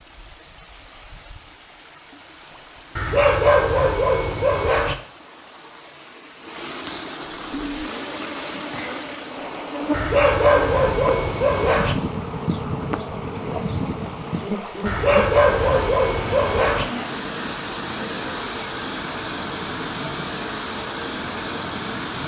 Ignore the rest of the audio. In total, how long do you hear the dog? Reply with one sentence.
The dog can be heard for 6 seconds in total.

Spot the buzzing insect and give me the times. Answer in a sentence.
The buzzing insect can be heard from 7.4 to 22.2 s.